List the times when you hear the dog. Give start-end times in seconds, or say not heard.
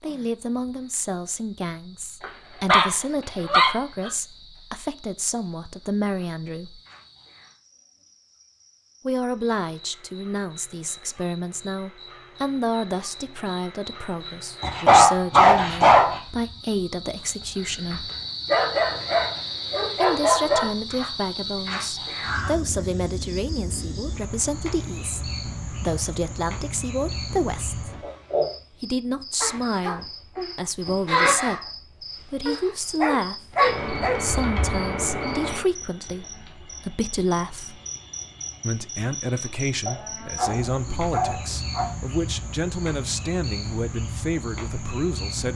2.2-4.1, 14.6-16.2, 18.4-20.7, 33.0-34.2, 39.9-41.9.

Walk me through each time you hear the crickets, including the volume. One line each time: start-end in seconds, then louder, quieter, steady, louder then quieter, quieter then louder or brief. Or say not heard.
0.0-45.5 louder then quieter.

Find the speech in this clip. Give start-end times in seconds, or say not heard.
0.0-6.8, 9.1-18.1, 19.9-27.9, 28.8-37.8, 38.6-45.5.